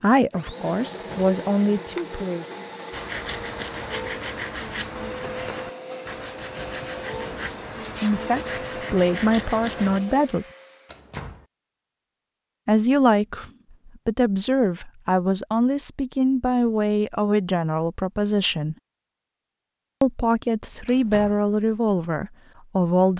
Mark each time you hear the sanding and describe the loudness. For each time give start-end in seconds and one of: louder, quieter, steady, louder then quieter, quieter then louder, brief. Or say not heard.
2.9-10.0 steady.